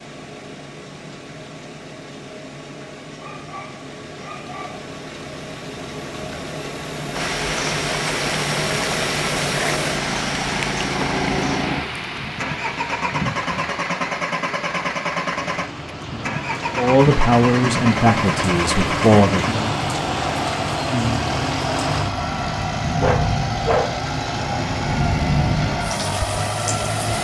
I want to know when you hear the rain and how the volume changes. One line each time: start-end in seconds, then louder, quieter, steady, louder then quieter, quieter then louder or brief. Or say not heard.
7.1-27.1 quieter then louder.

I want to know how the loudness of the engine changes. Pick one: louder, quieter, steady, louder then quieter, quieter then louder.
louder.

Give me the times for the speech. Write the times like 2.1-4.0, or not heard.
16.8-19.4.